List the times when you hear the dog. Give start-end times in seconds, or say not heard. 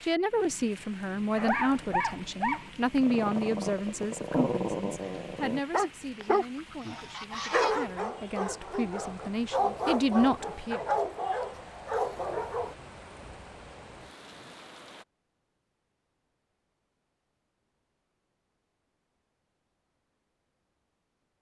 1.4-12.8.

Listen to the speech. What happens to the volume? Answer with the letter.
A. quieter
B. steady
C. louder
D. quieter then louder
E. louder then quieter
D.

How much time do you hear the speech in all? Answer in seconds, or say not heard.
11 s.